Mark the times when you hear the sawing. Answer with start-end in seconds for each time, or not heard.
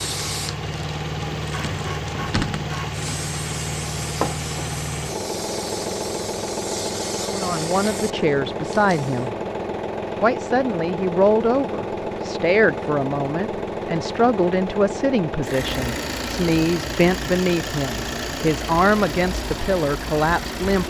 not heard.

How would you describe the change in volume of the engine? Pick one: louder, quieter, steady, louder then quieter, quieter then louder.
steady.